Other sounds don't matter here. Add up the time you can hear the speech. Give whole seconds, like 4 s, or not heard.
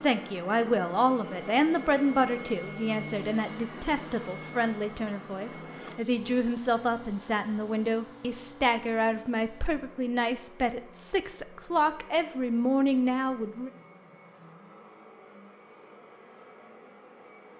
14 s.